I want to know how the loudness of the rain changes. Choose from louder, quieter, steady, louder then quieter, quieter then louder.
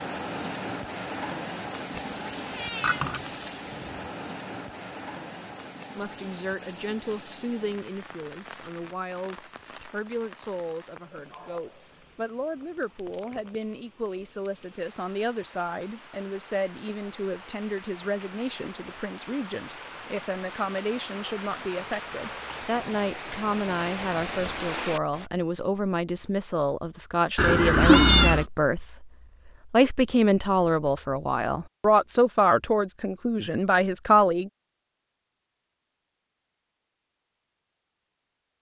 quieter then louder.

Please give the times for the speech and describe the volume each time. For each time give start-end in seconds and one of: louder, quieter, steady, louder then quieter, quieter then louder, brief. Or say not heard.
6.0-34.5 louder.